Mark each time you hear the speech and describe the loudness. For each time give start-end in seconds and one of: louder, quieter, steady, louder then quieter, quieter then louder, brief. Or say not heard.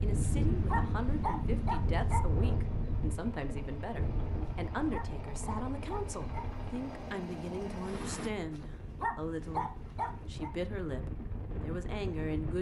0.0-12.5 steady.